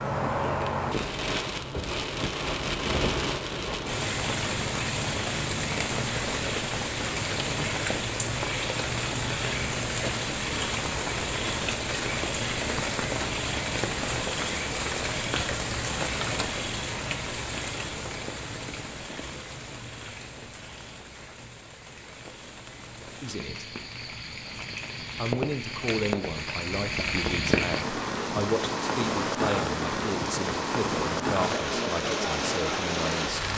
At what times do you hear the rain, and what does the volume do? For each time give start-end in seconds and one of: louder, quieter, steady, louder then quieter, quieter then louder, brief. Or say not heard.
0.0-33.5 quieter then louder.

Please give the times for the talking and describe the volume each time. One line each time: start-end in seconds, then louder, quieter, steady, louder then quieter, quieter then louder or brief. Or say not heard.
23.2-23.6 brief
25.1-33.5 steady.